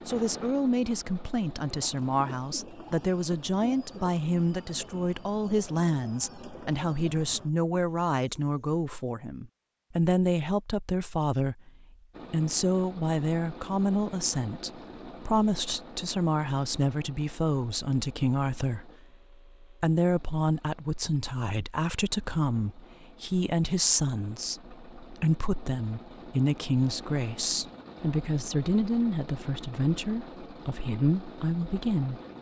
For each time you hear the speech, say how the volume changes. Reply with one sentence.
You can hear the speech from 0.1 to 32.3 s, at a steady volume.